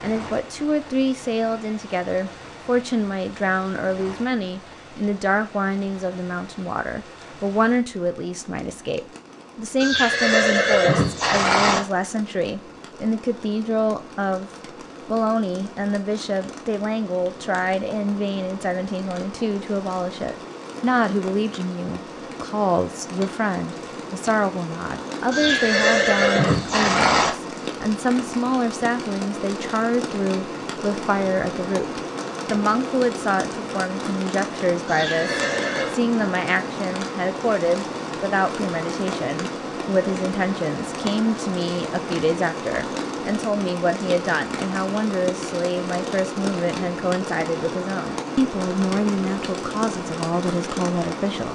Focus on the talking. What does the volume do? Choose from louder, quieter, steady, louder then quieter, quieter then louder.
steady.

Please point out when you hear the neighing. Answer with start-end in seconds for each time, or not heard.
9.8-11.8, 25.3-27.3, 34.9-36.0.